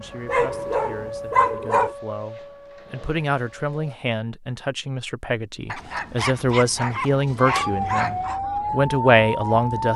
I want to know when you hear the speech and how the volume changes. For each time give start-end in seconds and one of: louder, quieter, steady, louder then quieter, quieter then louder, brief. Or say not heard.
0.0-9.9 louder.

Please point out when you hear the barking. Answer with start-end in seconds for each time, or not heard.
0.2-1.9, 5.7-8.4.